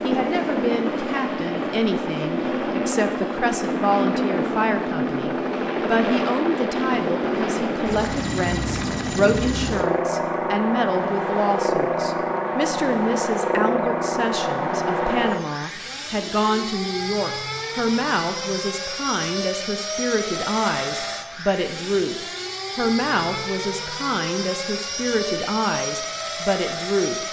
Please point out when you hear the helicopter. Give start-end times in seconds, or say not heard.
0.0-27.2.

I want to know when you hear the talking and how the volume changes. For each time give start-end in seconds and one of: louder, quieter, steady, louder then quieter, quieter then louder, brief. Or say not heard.
0.0-27.2 steady.